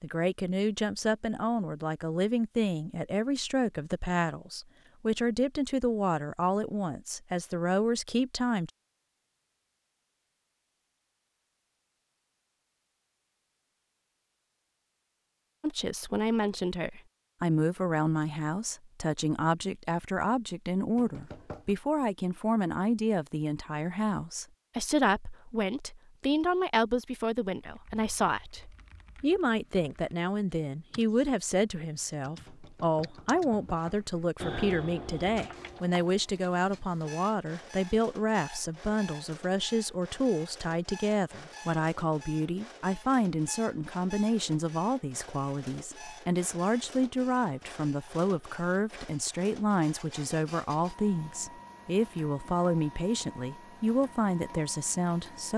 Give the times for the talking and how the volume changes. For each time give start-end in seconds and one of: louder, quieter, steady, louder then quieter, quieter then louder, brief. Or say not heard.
0.0-8.7 steady
15.6-55.5 steady.